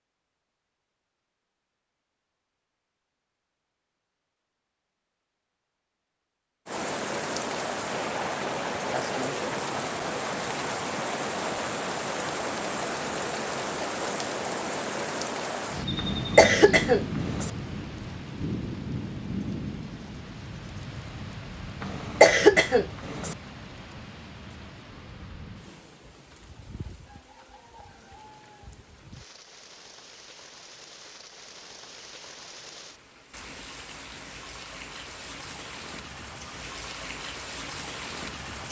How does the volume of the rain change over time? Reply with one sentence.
The loudness of the rain goes down, then up.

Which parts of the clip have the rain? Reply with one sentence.
You can hear the rain from 6.7 to 38.6 s.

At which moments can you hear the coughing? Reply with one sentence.
The coughing can be heard from 15.9 to 17.5 s and from 21.8 to 23.4 s.